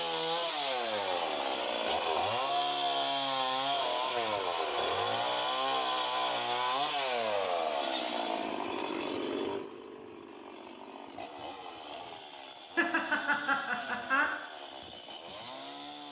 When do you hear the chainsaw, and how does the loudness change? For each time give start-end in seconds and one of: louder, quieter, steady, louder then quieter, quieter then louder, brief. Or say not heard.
0.0-16.0 quieter.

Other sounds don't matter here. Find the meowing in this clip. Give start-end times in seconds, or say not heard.
not heard.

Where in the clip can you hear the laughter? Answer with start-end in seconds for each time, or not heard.
12.8-14.3.